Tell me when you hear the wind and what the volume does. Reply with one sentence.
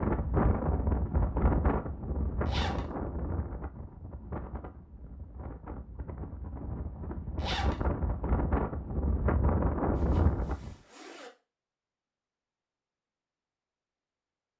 You can hear the wind from 0.0 to 10.8 s, getting quieter then louder.